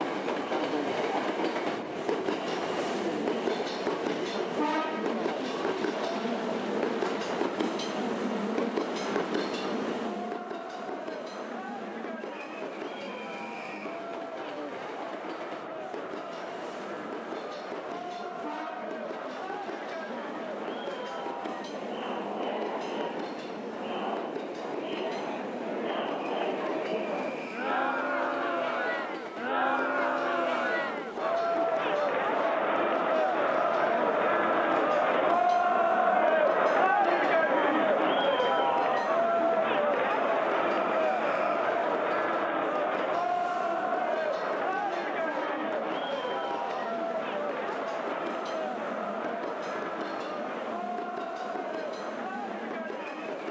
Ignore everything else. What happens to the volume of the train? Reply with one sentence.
The loudness of the train goes down.